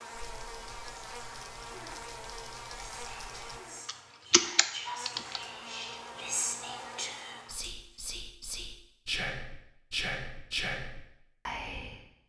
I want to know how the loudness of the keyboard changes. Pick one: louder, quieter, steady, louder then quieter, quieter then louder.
louder.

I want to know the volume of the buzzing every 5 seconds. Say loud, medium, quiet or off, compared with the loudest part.
loud, loud, off.